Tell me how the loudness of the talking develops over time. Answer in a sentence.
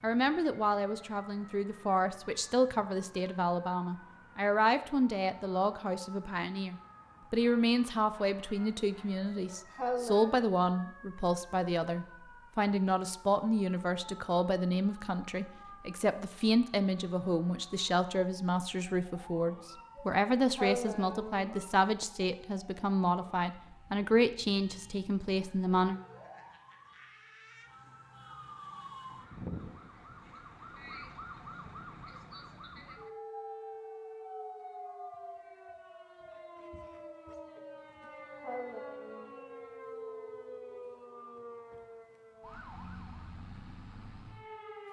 The volume of the talking stays about the same.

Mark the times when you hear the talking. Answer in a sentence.
The talking can be heard from 0.0 to 25.9 s.